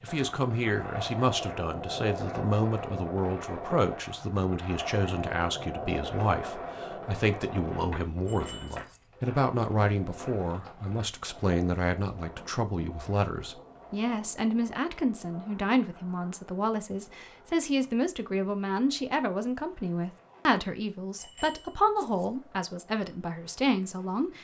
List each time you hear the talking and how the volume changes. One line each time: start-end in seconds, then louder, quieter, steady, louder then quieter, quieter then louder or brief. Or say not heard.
0.0-24.3 steady.